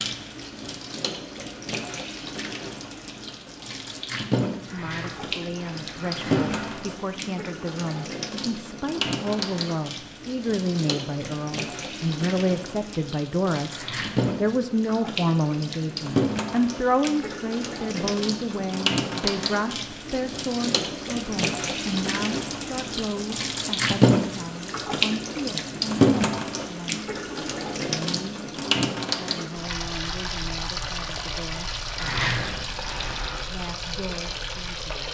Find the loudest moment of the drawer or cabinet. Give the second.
32 s.